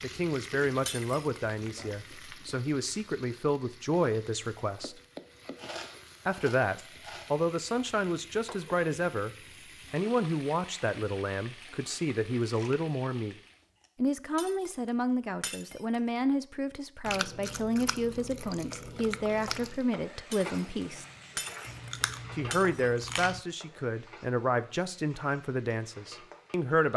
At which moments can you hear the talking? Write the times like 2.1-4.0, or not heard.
0.0-5.0, 6.2-9.3, 9.9-13.3, 13.9-21.1, 22.4-26.9.